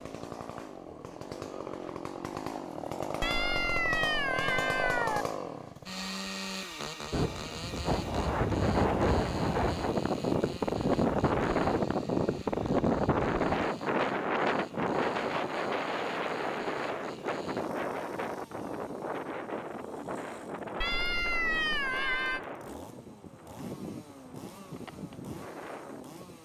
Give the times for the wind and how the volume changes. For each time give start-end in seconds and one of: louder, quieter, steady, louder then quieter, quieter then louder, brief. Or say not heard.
7.1-26.4 quieter.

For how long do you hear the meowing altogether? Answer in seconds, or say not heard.
4 s.